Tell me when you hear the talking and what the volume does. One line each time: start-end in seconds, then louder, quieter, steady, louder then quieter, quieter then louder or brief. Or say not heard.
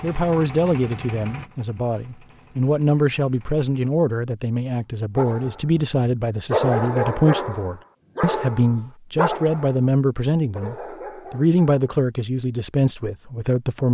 0.0-13.8 steady.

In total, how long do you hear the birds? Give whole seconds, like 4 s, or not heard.
not heard.